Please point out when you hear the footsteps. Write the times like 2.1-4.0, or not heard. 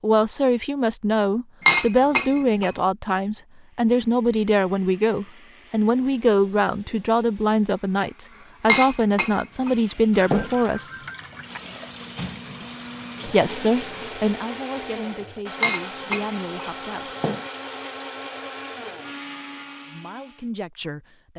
not heard.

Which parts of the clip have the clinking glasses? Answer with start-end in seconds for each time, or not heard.
1.6-2.7, 8.7-10.5, 15.6-17.4.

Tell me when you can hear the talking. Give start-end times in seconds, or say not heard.
0.0-10.9, 13.2-17.1, 19.9-21.3.